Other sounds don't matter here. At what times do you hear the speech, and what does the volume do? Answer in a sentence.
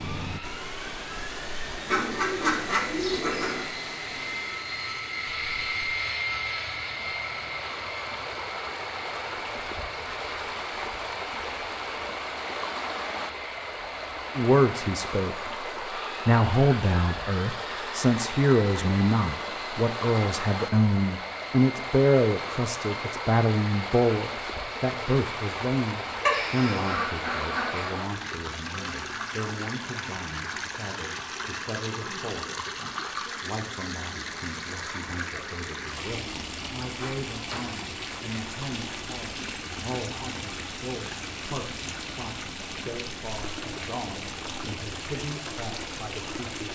You can hear the speech briefly from 14.3 to 15.5 s; and from 16.2 to 46.7 s, getting quieter.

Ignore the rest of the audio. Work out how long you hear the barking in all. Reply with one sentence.
You can't hear the barking here.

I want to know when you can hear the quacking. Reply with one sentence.
You can hear the quacking from 1.9 to 3.6 s and from 26.2 to 27.9 s.